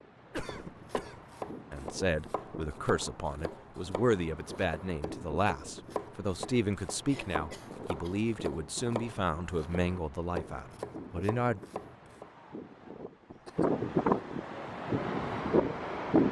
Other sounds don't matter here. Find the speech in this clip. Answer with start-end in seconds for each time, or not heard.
1.7-11.6.